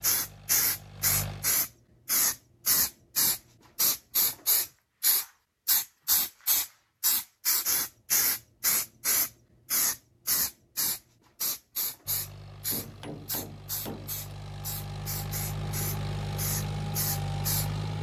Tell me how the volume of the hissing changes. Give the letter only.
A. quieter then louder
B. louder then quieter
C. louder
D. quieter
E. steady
D.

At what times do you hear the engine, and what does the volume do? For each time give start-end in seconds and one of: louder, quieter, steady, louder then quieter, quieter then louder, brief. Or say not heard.
0.0-1.7 brief
12.1-17.9 louder.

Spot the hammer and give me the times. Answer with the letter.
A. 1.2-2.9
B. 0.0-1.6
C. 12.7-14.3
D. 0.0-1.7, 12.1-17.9
C.